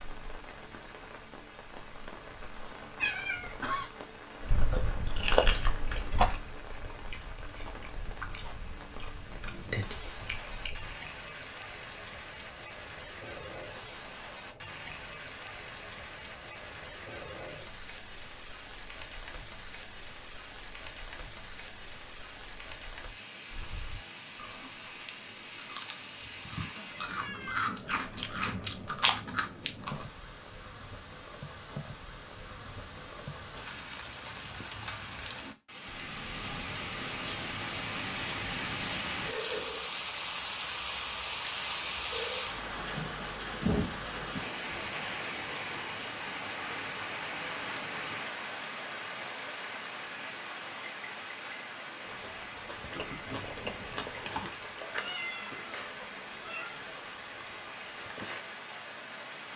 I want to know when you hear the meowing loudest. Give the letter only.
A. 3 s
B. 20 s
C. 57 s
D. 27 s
A.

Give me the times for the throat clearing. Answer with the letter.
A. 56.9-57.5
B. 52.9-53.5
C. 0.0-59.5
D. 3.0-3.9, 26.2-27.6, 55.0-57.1
B.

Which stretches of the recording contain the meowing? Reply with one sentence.
You can hear the meowing from 3.0 to 3.9 s, from 26.2 to 27.6 s and from 55.0 to 57.1 s.